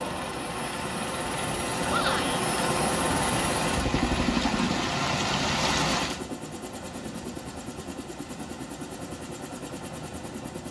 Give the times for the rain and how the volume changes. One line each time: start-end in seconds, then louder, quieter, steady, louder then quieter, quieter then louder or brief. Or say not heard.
0.0-6.2 louder.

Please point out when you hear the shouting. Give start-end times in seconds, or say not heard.
1.9-2.5.